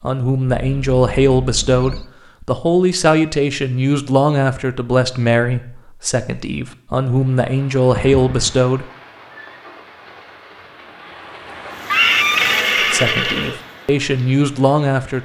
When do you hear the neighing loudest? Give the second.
12 s.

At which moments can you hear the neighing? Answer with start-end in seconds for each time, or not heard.
0.6-2.1, 7.9-8.6, 11.9-13.6.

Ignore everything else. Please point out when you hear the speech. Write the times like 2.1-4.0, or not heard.
0.0-8.8, 12.8-15.2.